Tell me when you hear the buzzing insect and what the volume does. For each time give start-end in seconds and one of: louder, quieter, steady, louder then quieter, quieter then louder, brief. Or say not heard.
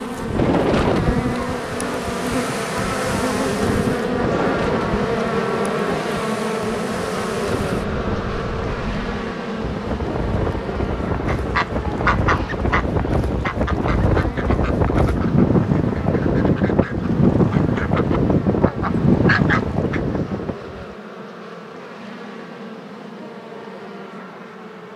0.0-24.9 quieter.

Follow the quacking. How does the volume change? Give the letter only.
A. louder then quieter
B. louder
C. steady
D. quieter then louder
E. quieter
D.